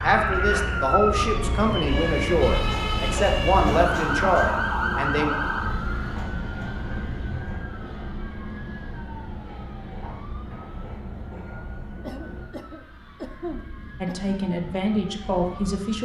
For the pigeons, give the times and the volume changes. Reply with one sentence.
You can't hear the pigeons here.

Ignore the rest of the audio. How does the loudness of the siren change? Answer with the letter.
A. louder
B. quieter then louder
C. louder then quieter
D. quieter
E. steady
D.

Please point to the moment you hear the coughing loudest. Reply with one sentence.
The volume of the coughing peaks at 13 seconds.